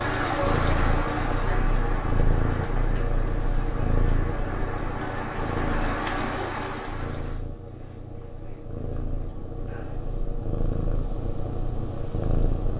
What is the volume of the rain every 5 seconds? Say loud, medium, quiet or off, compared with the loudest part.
loud, loud, off.